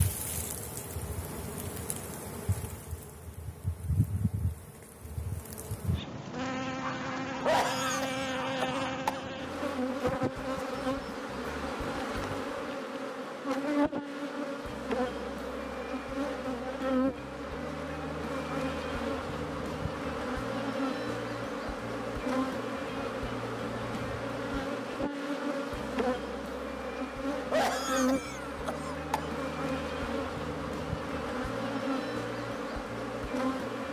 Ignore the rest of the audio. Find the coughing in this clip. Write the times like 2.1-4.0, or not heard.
7.4-9.2, 27.4-29.4.